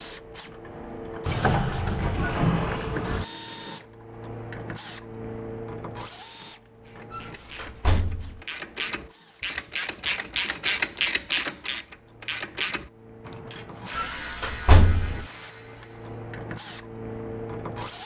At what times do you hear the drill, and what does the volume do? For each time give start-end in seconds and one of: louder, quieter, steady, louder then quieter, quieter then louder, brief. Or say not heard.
0.0-18.0 quieter then louder.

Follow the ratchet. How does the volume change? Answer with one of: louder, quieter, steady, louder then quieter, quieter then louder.
louder then quieter.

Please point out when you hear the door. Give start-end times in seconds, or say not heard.
1.2-3.2, 7.1-8.4, 13.9-15.2.